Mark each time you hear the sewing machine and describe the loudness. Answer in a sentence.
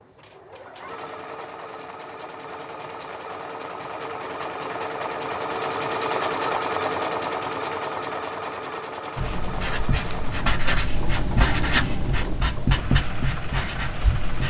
The sewing machine can be heard from 0.0 to 14.4 s, getting louder then quieter.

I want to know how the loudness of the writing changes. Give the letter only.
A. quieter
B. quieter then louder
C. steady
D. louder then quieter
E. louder
D.